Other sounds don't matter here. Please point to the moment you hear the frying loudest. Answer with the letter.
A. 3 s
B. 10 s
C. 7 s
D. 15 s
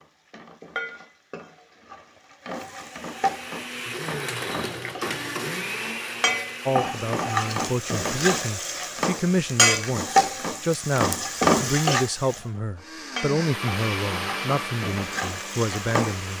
B.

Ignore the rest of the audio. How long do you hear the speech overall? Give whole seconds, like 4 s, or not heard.
10 s.